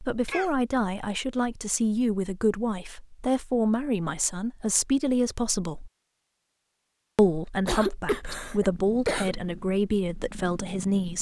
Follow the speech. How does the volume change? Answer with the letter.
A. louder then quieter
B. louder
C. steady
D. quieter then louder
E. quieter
C.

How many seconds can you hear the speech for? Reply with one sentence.
The speech can be heard for 10 seconds in total.